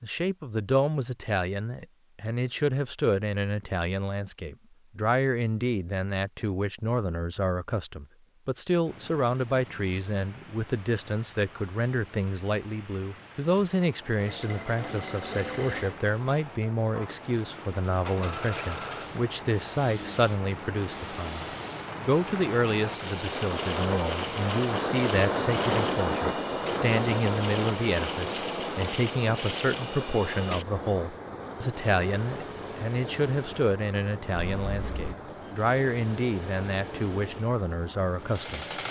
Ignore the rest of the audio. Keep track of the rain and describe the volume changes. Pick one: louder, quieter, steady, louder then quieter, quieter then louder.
louder then quieter.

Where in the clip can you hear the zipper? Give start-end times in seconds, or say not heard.
34.4-35.1.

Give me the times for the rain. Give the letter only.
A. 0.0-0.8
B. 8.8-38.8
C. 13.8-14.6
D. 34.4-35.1
B.